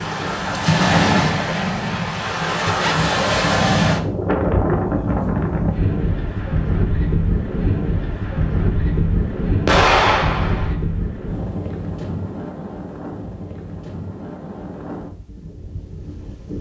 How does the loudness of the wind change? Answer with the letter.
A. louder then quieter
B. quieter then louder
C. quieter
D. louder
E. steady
C.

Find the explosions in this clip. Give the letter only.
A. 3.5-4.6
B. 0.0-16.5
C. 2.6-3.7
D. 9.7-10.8
D.